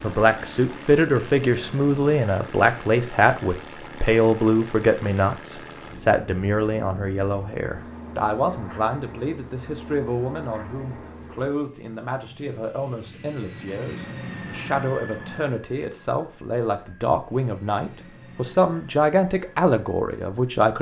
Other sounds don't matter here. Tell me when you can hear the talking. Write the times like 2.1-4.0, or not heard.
0.0-20.7.